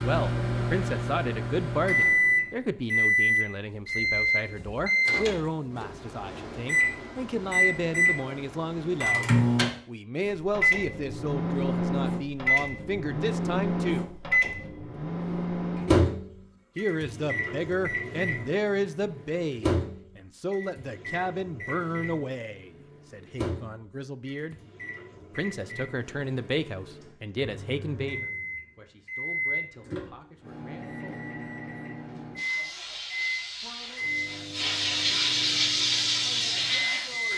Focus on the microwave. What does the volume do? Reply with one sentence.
The volume of the microwave goes down.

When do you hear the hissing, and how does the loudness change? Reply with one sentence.
You can hear the hissing from 32.4 to 37.3 s, getting louder.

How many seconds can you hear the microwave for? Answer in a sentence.
You can hear the microwave for 37 seconds altogether.